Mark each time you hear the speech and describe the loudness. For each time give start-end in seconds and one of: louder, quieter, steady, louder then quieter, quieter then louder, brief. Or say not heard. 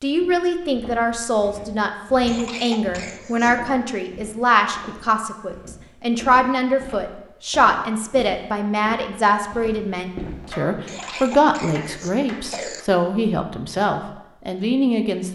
0.0-15.3 steady.